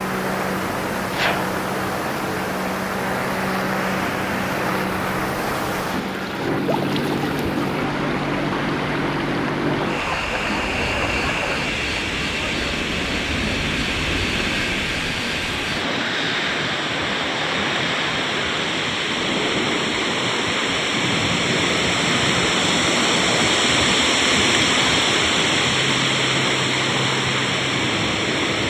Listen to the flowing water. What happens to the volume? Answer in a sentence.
The loudness of the flowing water goes up.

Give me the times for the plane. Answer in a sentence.
The plane can be heard from 0.0 to 28.6 s.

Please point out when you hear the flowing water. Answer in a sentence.
The flowing water can be heard from 0.0 to 28.6 s.